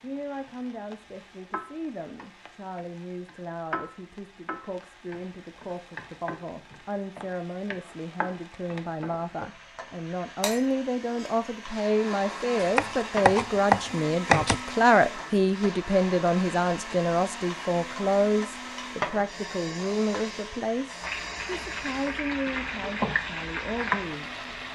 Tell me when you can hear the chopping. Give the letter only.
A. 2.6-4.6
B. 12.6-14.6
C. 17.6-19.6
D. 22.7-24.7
B.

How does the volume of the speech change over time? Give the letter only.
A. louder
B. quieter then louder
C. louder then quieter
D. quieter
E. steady
C.